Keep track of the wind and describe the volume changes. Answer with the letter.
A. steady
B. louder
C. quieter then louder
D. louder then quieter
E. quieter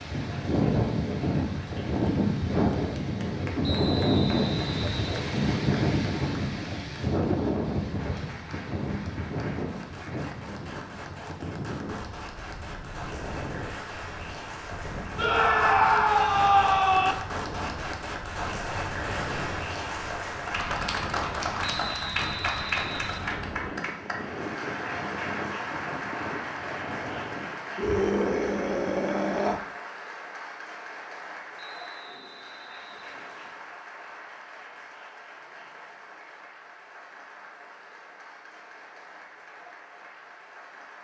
E.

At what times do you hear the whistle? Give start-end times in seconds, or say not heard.
3.6-5.6, 21.6-23.4, 31.6-33.5.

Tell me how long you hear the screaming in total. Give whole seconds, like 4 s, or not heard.
4 s.